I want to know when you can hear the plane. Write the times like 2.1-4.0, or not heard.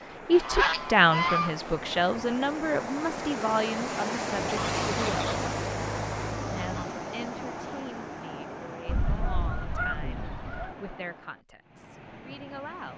not heard.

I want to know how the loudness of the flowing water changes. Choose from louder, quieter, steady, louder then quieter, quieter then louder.
louder then quieter.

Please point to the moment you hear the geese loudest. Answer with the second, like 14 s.
1 s.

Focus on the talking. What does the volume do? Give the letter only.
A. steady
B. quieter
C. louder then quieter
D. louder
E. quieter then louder
B.